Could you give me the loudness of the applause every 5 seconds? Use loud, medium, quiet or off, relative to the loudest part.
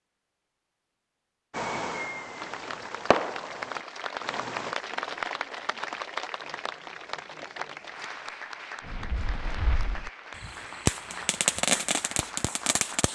loud, loud, medium.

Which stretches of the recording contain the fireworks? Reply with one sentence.
The fireworks can be heard from 1.5 to 4.8 s and from 8.8 to 13.1 s.